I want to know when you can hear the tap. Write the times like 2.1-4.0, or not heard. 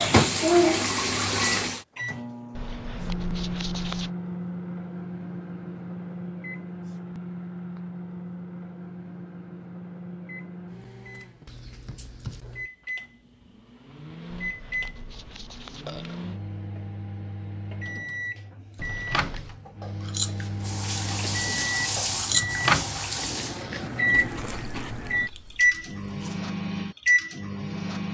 0.0-1.9, 20.4-23.6.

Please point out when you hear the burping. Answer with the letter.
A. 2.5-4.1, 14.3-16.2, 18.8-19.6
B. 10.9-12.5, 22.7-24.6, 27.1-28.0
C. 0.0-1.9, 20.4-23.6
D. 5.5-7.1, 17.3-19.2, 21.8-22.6
A.